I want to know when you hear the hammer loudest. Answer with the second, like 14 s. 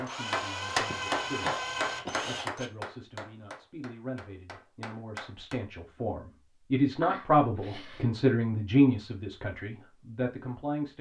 1 s.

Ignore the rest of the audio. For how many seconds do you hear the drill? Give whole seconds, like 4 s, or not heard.
3 s.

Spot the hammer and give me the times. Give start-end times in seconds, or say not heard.
0.0-5.6.